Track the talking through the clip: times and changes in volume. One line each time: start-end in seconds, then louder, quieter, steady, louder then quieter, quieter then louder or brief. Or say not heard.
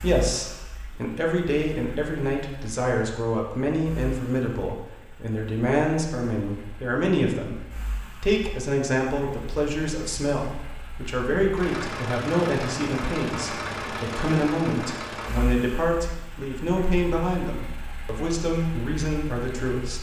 0.0-19.9 steady.